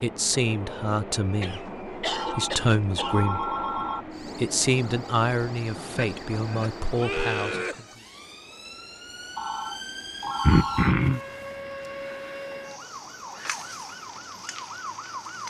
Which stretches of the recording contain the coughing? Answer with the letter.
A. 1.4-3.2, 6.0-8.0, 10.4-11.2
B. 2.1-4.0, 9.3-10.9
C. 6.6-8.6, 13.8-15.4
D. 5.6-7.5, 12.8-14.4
A.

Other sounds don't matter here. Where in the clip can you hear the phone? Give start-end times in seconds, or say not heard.
2.1-4.0, 9.3-10.9.